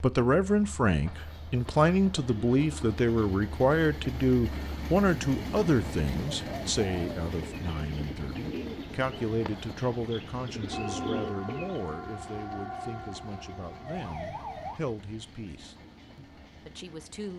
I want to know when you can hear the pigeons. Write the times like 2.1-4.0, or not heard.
6.4-11.8.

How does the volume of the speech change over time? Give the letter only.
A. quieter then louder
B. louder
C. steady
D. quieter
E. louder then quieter
D.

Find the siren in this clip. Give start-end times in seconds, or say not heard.
10.7-14.8.